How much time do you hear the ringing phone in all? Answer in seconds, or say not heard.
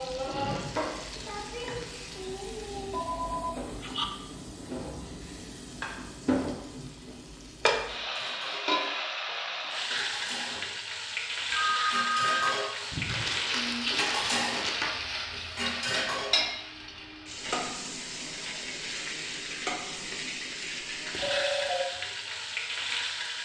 3 s.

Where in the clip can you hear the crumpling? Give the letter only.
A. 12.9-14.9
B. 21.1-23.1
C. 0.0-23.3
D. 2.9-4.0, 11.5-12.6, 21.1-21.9
A.